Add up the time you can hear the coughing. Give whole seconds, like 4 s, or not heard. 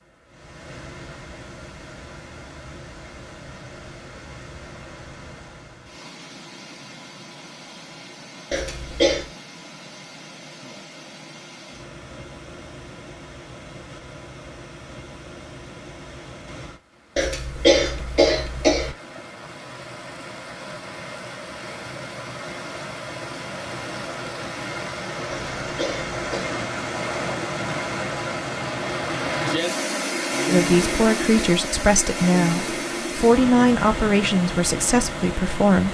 4 s.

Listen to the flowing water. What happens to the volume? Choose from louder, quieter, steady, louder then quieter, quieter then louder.
louder.